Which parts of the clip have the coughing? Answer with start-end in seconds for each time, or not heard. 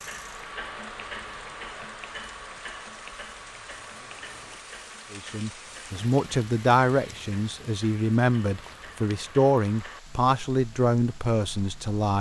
not heard.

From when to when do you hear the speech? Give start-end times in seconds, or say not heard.
5.1-12.1.